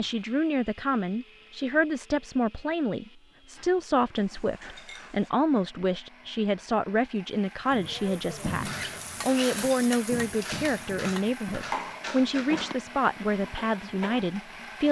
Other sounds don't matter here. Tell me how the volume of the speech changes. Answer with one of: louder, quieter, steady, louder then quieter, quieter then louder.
steady.